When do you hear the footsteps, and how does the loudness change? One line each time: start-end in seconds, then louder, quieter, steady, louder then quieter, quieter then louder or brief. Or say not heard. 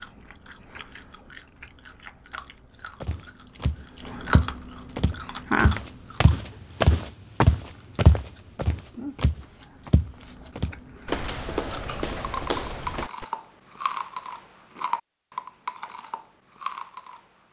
3.0-13.2 louder then quieter.